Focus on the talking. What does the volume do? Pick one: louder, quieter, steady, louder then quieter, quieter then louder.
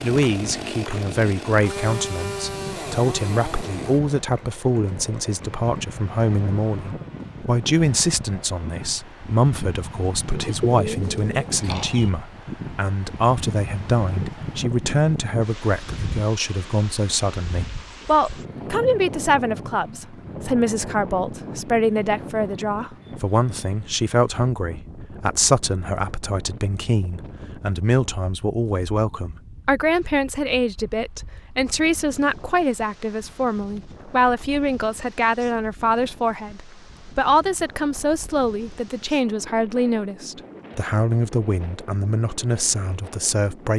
steady.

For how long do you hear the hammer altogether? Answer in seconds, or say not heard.
not heard.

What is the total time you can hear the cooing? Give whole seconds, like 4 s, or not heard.
2 s.